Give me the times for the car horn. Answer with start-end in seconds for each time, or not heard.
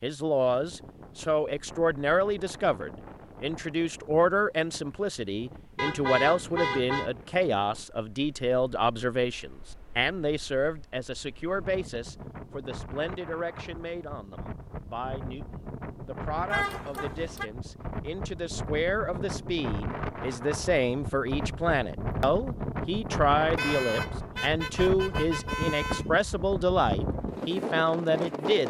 5.8-7.1, 16.5-17.5, 23.6-26.1.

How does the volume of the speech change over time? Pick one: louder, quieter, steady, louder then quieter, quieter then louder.
quieter then louder.